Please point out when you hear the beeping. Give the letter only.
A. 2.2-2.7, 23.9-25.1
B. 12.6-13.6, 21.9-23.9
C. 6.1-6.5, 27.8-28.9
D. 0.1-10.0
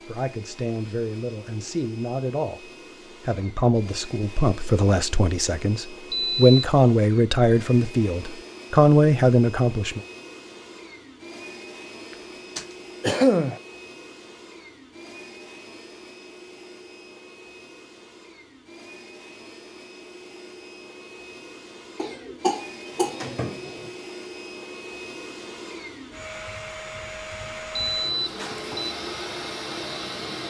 C.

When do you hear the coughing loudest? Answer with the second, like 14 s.
13 s.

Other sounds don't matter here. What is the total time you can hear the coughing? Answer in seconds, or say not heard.
3 s.